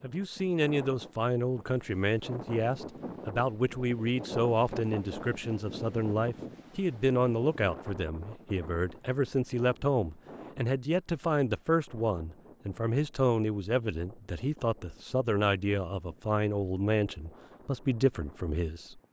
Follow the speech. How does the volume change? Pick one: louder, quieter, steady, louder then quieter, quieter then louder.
steady.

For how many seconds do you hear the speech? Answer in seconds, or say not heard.
19 s.